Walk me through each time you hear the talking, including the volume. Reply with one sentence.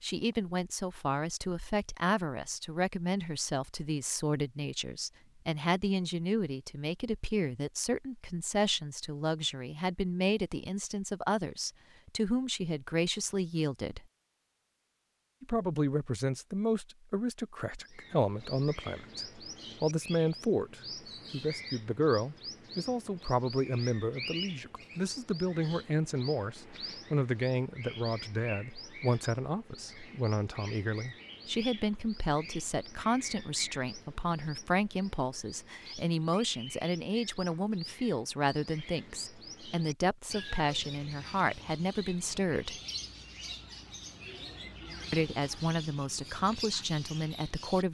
You can hear the talking from 0.0 to 14.0 s, at a steady volume; from 15.4 to 42.8 s, at a steady volume; and briefly from 45.1 to 47.8 s.